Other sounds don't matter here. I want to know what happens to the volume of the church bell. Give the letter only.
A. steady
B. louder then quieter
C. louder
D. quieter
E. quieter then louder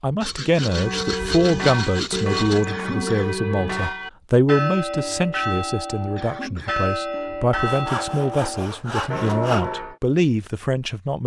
A.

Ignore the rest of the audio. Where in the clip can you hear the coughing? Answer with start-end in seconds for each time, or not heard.
2.6-3.5, 6.2-6.8.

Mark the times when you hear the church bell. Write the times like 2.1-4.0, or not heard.
0.6-9.9.